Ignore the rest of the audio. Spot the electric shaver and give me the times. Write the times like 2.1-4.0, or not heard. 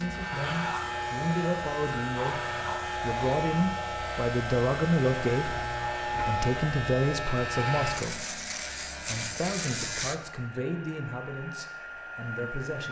0.0-10.2.